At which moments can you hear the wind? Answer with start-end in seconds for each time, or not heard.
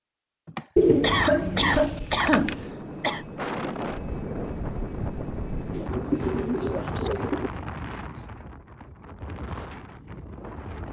3.4-10.8.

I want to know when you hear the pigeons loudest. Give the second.
1 s.